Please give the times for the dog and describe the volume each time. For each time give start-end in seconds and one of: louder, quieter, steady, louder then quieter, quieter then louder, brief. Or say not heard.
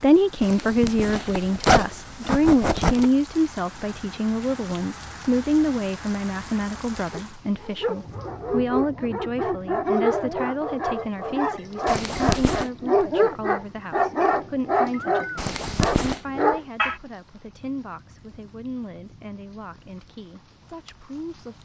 7.1-16.9 louder.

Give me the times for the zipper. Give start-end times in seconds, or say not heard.
0.4-3.1, 11.8-12.7, 15.3-16.2.